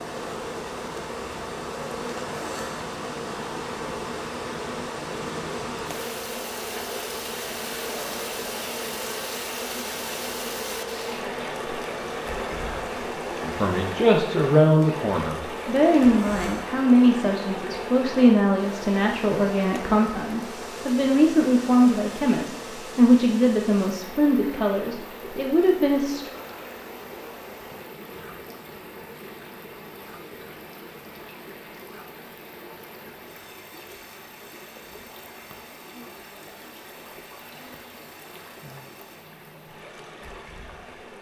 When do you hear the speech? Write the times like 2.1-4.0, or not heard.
13.4-26.3.